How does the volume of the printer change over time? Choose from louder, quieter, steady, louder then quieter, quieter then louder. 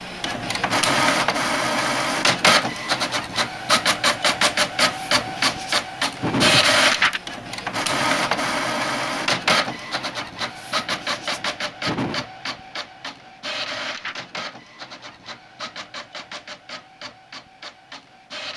quieter.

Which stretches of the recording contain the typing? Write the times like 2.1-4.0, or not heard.
not heard.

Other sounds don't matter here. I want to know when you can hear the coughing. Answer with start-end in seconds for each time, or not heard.
4.8-6.7, 10.4-12.2.